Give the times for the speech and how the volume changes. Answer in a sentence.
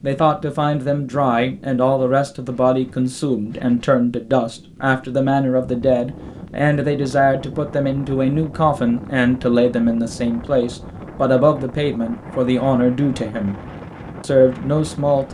You can hear the speech from 0.0 to 13.6 s, at a steady volume; and briefly from 14.2 to 15.2 s.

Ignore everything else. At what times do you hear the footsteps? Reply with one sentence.
The footsteps can't be heard in this clip.